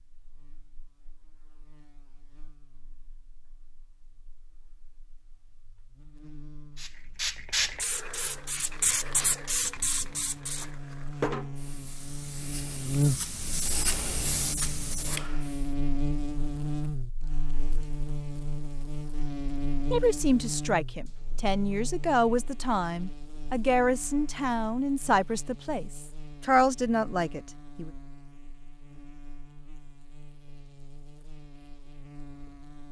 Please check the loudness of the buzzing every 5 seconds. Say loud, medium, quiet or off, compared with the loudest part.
quiet, quiet, loud, loud, medium, quiet, quiet.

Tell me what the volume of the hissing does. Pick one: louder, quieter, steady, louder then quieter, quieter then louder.
quieter then louder.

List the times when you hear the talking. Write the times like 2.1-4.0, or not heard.
19.9-27.9.